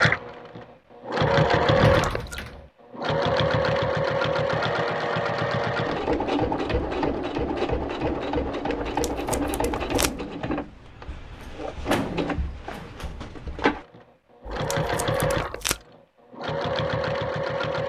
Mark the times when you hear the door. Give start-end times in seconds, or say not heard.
1.2-2.7, 11.3-13.1.